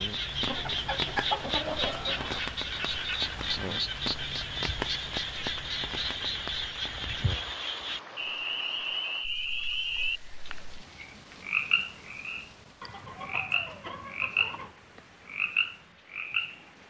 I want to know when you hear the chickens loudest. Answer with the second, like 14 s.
1 s.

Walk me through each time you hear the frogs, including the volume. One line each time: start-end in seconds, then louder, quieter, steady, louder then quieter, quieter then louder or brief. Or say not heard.
0.0-16.6 steady.